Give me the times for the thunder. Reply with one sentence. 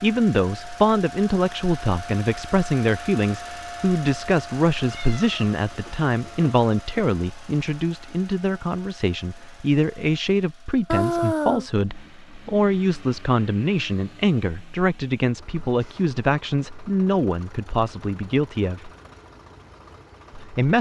You can't hear the thunder here.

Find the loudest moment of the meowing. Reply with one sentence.
The loudest moment of the meowing is at 11 seconds.